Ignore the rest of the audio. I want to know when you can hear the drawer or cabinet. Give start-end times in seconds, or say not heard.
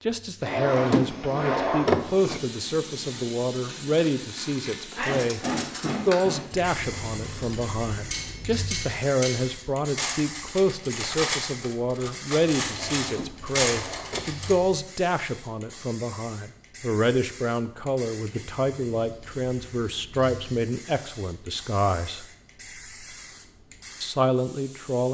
0.5-2.4, 12.7-14.3.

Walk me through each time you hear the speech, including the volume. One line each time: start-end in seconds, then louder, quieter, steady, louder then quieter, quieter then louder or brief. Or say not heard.
0.1-22.2 steady
24.0-25.0 brief.